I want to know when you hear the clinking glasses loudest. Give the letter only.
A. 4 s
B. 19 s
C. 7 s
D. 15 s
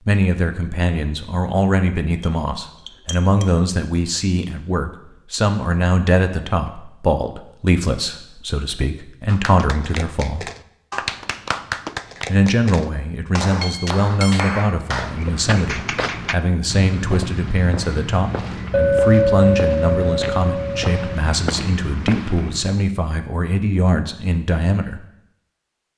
B.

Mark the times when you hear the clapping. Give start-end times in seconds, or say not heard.
9.2-16.4.